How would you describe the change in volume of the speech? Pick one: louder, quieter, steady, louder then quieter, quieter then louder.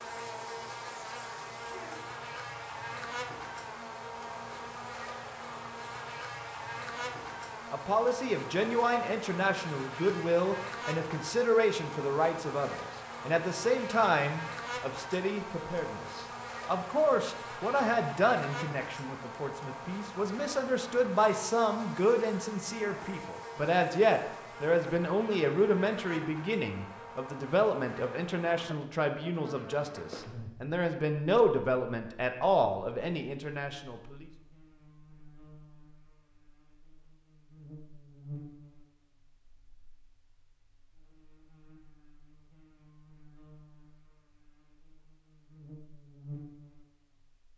steady.